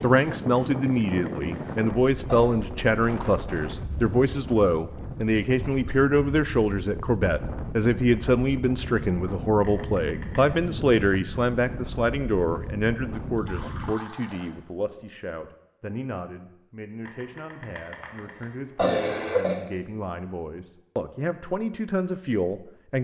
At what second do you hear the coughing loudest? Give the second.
19 s.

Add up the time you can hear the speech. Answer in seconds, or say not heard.
23 s.